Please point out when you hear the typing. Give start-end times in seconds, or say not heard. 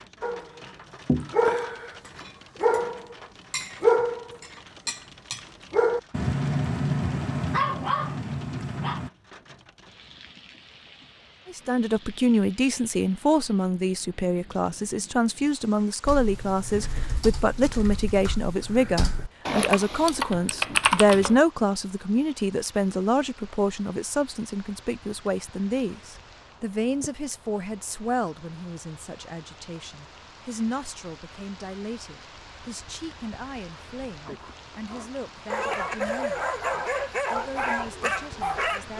16.1-21.4.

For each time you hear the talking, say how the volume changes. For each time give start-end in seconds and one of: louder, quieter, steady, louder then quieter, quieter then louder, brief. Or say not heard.
11.4-38.9 quieter.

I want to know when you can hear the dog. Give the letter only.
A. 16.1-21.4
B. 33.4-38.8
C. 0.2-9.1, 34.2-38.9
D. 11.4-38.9
C.